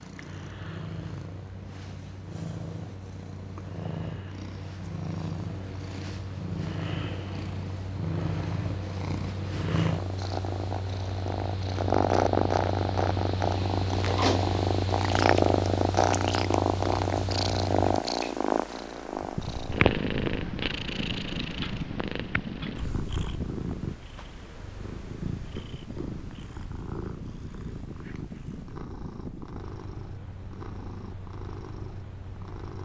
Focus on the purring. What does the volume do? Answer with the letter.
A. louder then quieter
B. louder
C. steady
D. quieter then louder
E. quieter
A.